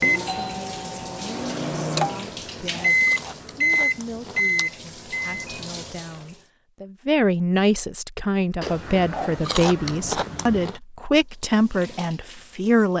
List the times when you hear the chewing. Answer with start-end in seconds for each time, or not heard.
2.2-4.7, 8.6-10.8.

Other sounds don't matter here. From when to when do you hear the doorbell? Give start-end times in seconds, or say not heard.
0.1-1.5.